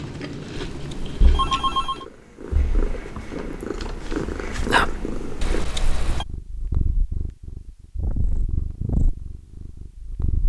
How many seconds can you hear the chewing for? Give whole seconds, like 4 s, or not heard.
2 s.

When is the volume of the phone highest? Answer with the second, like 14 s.
2 s.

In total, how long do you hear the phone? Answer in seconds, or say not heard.
2 s.